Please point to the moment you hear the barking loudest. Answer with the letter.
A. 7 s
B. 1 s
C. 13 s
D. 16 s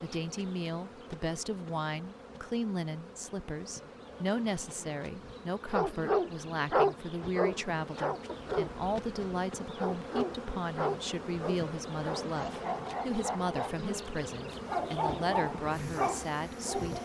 A.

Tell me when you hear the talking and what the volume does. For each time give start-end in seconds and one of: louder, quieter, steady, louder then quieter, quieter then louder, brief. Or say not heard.
0.0-17.0 steady.